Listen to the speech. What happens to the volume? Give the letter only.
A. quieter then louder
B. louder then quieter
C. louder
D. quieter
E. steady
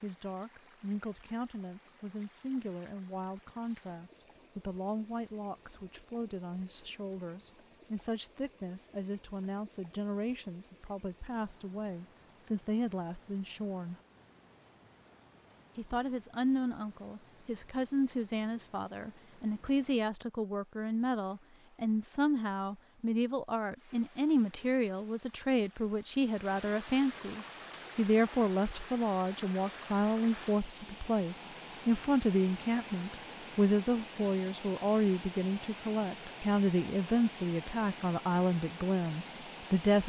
C.